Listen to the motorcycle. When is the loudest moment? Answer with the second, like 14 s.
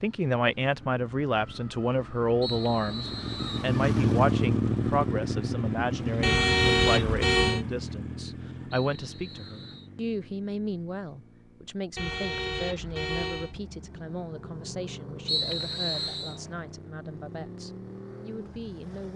4 s.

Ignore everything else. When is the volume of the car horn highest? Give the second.
7 s.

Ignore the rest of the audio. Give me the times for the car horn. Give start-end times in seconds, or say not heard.
6.2-7.7, 11.9-13.6.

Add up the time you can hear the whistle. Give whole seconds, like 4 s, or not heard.
4 s.